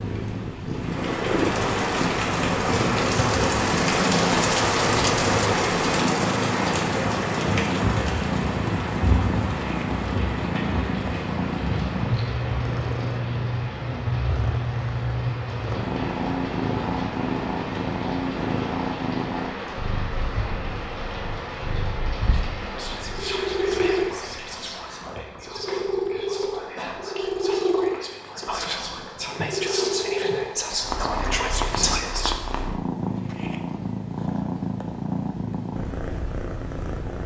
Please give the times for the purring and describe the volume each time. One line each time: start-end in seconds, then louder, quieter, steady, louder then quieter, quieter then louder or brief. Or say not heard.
0.0-37.2 steady.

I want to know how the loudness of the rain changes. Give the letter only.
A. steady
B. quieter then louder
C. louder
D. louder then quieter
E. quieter
E.